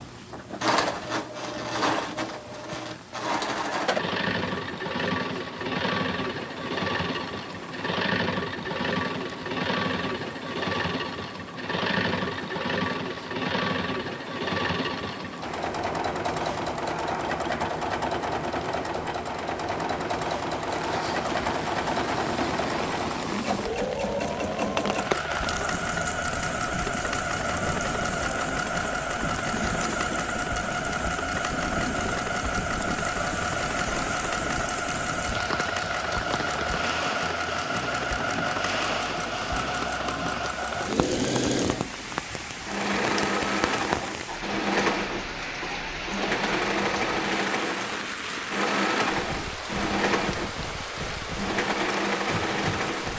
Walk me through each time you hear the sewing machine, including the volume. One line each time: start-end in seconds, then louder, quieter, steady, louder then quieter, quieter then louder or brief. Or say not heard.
0.0-53.1 steady.